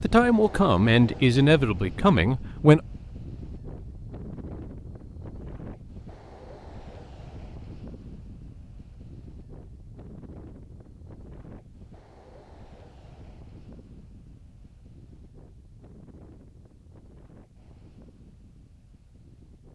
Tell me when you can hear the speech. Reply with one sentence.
You can hear the speech from 0.0 to 2.8 s.